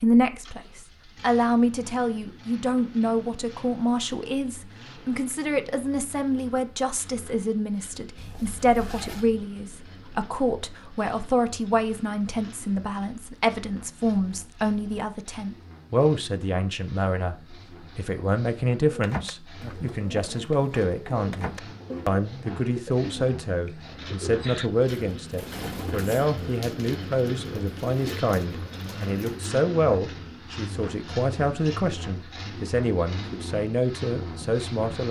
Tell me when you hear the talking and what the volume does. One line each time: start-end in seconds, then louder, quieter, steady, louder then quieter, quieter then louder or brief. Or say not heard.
0.0-35.0 steady.